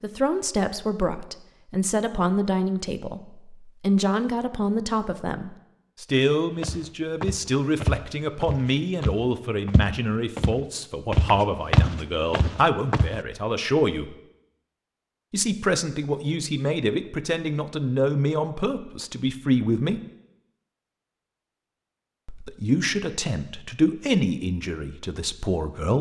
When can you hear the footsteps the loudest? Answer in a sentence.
The loudest moment of the footsteps is at 12 seconds.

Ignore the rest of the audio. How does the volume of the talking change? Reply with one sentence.
The loudness of the talking stays about the same.